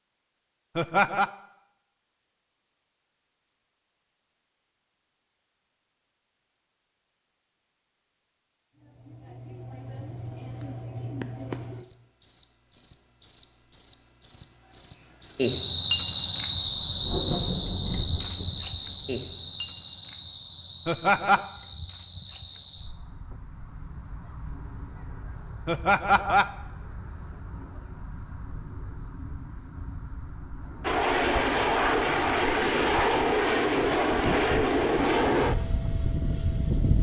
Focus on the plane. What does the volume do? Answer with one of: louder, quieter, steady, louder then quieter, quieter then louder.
quieter.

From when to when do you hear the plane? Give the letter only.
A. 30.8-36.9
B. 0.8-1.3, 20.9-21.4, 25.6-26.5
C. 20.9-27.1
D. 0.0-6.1
A.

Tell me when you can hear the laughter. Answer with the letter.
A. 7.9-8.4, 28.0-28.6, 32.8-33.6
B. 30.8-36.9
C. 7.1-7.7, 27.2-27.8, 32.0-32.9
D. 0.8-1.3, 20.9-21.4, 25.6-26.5
D.